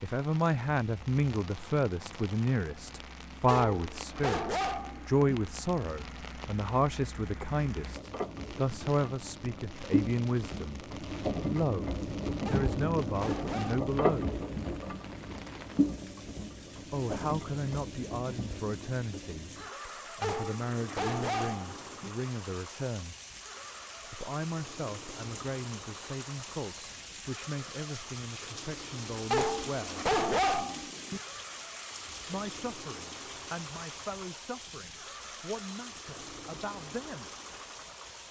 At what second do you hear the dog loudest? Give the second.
30 s.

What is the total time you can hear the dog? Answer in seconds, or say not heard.
7 s.